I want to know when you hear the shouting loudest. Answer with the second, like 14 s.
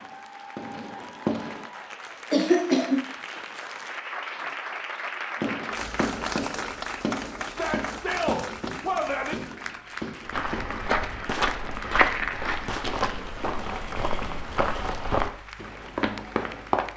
9 s.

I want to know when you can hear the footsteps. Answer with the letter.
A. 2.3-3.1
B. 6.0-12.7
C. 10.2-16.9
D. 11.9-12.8
C.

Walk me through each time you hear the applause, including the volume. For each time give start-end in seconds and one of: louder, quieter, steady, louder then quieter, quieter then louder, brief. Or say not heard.
0.0-16.9 louder then quieter.